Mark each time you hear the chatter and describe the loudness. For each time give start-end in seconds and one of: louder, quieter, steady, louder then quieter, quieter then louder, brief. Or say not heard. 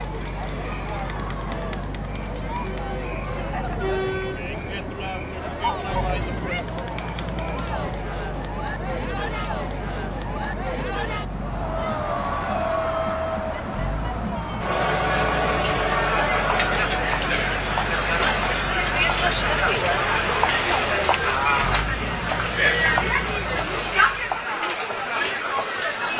0.0-26.1 louder.